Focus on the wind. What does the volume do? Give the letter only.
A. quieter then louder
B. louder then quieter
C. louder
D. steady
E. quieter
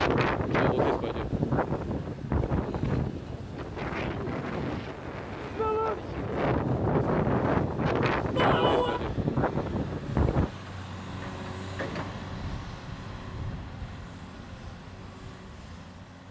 A.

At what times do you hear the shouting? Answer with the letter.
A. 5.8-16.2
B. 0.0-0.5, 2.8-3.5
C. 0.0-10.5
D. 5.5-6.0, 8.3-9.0
D.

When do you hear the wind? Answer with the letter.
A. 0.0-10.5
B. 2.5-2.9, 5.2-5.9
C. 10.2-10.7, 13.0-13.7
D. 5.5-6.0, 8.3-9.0
A.